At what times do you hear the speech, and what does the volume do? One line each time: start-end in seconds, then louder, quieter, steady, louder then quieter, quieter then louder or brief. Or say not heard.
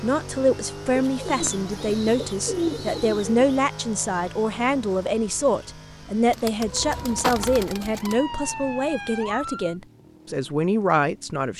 0.0-11.5 steady.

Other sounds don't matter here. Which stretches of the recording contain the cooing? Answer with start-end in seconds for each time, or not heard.
0.9-3.4, 6.2-8.2.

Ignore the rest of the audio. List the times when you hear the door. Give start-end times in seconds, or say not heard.
not heard.